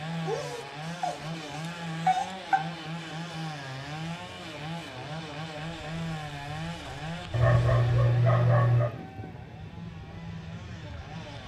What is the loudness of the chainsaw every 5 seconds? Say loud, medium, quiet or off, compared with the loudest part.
loud, loud, medium.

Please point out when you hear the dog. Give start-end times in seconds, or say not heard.
0.2-2.6, 7.3-8.9.